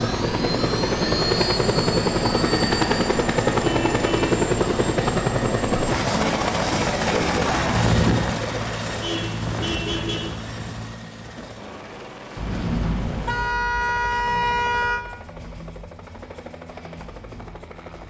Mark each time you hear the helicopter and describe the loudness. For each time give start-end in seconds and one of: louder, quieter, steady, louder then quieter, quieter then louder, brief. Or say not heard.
0.0-18.0 quieter.